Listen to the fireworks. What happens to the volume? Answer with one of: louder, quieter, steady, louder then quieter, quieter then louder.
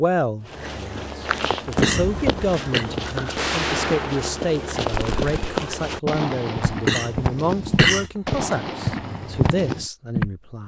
steady.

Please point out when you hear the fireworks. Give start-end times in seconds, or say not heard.
1.8-9.8.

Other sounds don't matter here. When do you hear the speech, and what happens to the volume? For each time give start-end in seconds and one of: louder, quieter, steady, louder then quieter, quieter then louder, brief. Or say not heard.
0.0-10.6 steady.